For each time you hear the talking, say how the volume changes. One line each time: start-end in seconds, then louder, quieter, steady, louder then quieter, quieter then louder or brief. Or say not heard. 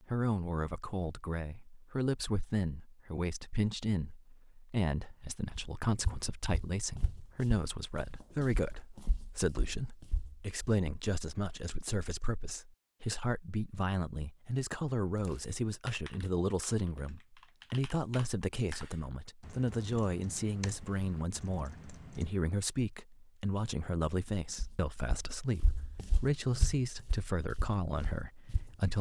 0.0-28.9 steady.